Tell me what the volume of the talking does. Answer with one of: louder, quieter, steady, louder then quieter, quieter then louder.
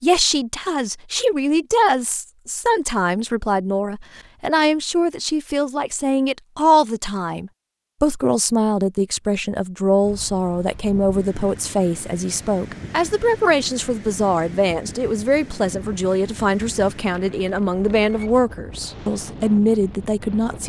steady.